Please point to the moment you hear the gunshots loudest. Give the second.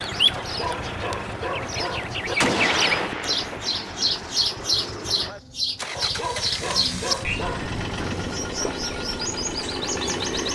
3 s.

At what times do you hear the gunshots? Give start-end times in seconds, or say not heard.
2.4-4.0.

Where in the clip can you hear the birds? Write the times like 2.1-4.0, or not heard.
0.0-10.5.